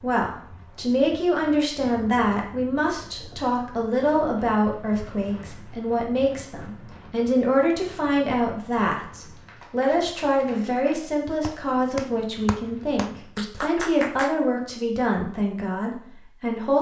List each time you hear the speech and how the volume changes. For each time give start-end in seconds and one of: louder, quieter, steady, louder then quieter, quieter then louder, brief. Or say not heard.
0.0-16.7 steady.